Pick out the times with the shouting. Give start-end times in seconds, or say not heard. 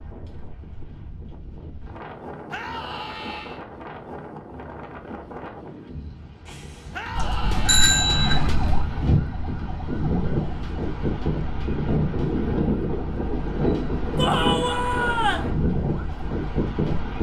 2.5-3.6, 6.9-8.6, 14.2-15.5.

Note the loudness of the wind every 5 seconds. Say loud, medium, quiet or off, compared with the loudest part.
quiet, medium, loud, loud.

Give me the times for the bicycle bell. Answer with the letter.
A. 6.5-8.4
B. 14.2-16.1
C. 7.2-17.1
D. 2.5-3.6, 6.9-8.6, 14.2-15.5
A.